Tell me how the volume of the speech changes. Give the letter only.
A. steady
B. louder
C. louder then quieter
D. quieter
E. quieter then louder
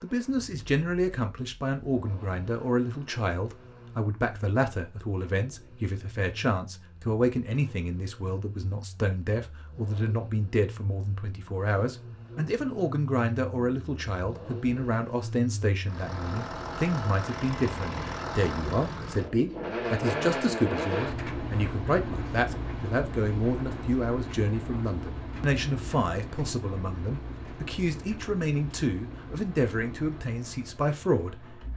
A.